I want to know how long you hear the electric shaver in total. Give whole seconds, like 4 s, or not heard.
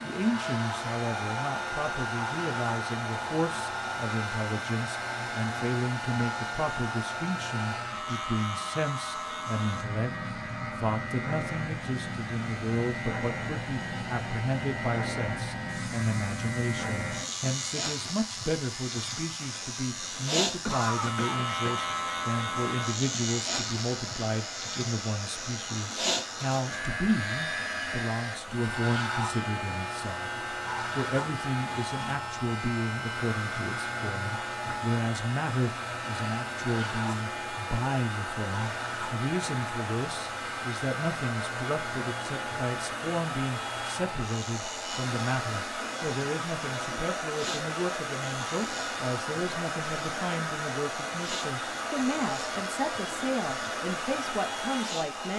55 s.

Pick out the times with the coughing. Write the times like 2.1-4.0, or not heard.
20.6-21.8.